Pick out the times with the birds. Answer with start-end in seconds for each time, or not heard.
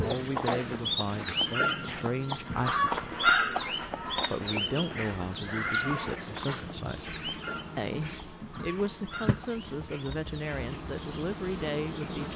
0.0-10.3.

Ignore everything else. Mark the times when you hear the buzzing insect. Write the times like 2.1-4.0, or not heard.
0.0-12.3.